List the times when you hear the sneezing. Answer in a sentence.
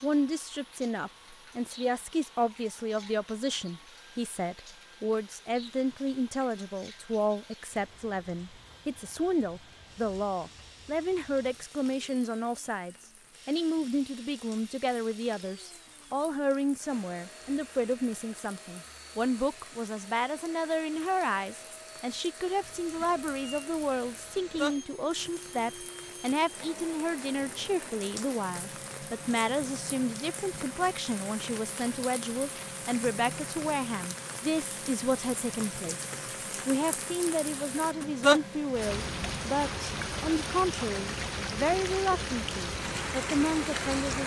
You can't hear the sneezing here.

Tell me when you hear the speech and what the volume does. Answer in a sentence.
You can hear the speech from 0.0 to 44.2 s, at a steady volume.